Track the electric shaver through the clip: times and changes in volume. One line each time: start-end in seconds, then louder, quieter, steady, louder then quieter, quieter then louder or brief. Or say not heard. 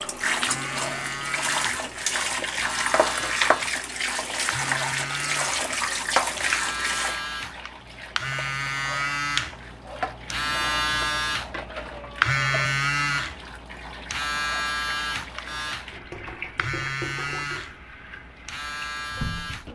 0.2-19.7 louder then quieter.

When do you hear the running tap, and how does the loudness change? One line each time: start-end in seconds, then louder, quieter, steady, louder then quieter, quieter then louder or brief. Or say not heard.
0.0-19.7 quieter.